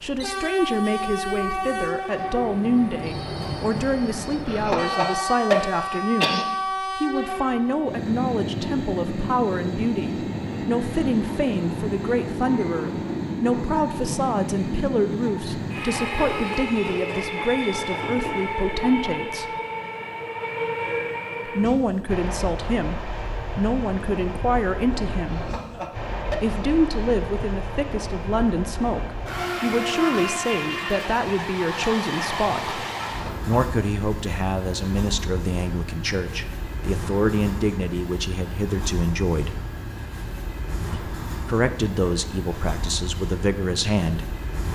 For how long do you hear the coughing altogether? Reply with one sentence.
The coughing can be heard for 4 seconds in total.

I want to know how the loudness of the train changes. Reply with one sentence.
The volume of the train goes down.